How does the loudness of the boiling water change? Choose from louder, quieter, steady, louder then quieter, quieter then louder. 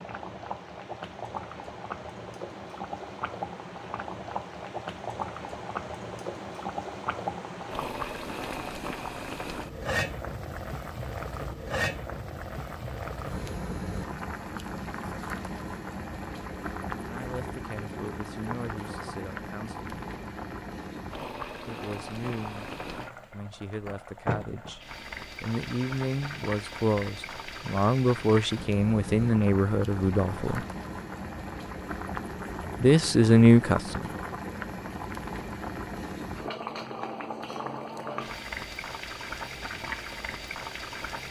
steady.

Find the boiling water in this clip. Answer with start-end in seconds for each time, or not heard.
0.0-41.2.